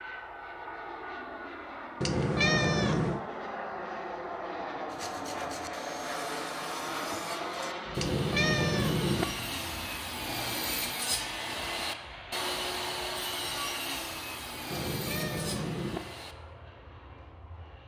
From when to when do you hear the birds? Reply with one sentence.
The birds can't be heard in this clip.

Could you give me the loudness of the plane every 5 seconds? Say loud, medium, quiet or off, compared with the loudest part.
loud, loud, medium, quiet.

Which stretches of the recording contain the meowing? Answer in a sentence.
The meowing can be heard from 2.0 to 3.2 s, from 8.0 to 9.2 s and from 14.7 to 16.0 s.